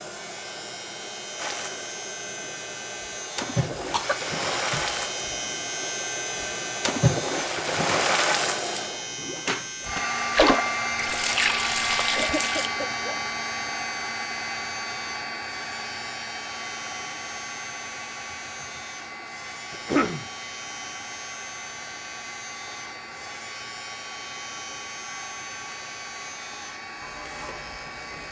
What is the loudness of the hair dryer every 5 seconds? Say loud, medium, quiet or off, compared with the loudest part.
medium, medium, loud, medium, medium, medium.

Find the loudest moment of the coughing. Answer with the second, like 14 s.
20 s.